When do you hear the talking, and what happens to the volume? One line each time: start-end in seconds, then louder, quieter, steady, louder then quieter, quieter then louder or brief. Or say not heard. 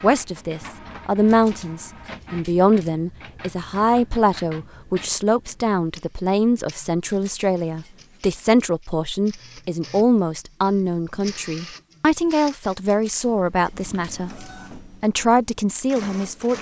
0.0-16.5 steady.